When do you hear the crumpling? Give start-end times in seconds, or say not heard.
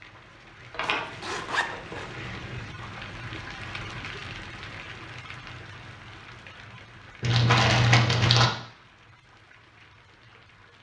0.7-2.8, 7.2-8.5.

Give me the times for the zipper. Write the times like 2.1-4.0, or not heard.
0.8-2.1.